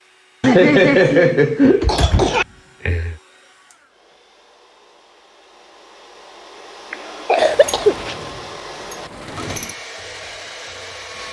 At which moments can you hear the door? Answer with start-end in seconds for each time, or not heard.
1.6-3.2, 7.3-9.8.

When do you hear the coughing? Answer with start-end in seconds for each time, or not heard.
0.4-2.5, 6.9-8.2.